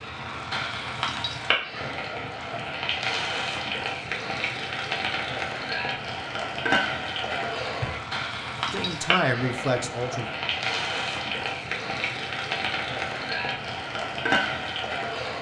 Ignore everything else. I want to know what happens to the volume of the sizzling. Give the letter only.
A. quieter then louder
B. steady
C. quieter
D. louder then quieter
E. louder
B.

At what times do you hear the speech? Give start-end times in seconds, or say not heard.
8.7-10.2.